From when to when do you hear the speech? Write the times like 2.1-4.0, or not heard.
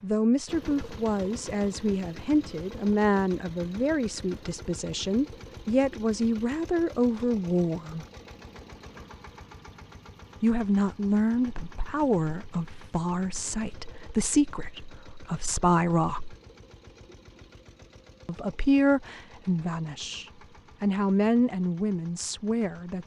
0.0-8.1, 10.4-16.4, 18.2-23.0.